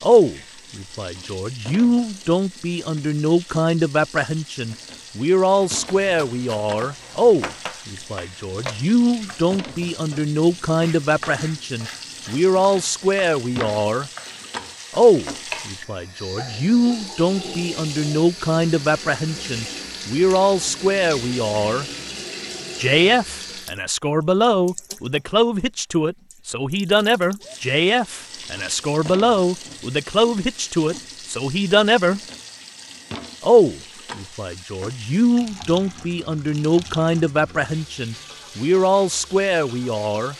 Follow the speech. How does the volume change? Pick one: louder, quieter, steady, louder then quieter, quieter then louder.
steady.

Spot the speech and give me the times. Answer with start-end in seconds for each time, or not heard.
0.0-14.1, 14.9-21.9, 22.8-32.2, 33.4-40.3.